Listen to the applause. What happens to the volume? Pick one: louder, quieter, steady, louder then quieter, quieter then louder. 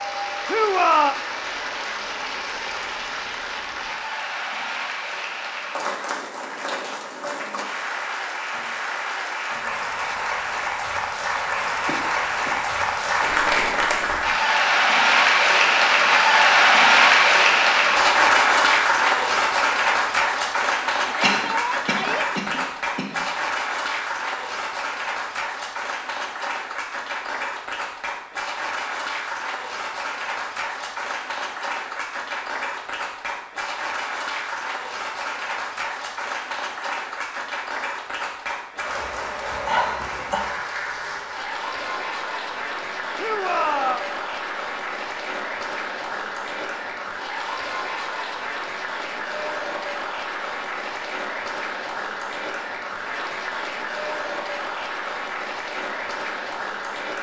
louder then quieter.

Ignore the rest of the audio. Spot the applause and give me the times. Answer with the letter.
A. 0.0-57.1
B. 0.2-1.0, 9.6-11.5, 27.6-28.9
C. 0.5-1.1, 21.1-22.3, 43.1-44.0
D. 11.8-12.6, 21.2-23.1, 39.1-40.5
A.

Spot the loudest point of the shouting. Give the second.
1 s.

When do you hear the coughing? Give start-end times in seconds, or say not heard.
11.8-12.6, 21.2-23.1, 39.1-40.5.